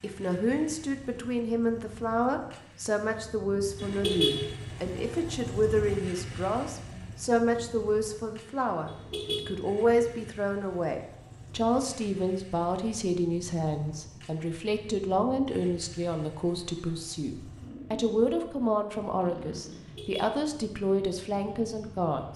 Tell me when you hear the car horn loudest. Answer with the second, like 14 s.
4 s.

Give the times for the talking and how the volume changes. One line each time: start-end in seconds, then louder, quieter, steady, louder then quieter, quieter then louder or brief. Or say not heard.
0.0-22.3 steady.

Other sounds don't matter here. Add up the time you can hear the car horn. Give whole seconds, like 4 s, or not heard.
2 s.